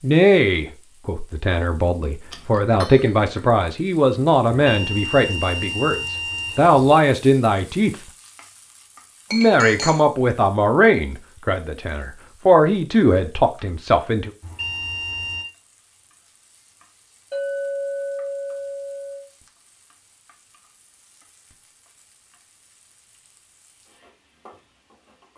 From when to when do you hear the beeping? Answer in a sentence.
The beeping can be heard from 4.5 to 6.8 s and from 14.4 to 15.4 s.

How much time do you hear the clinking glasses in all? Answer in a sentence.
The clinking glasses can be heard for 4 seconds in total.